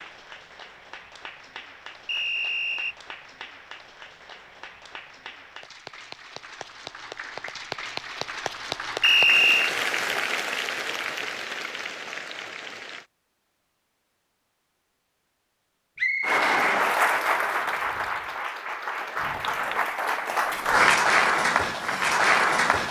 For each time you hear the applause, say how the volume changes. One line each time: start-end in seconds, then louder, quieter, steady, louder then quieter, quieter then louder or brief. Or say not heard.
0.0-13.1 louder
16.2-22.8 quieter then louder.